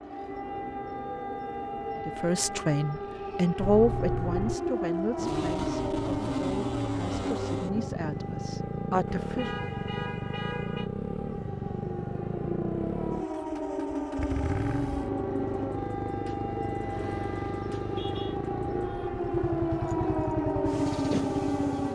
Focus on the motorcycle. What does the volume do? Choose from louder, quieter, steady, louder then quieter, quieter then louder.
louder.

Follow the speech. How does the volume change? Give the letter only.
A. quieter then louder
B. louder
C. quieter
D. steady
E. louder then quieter
A.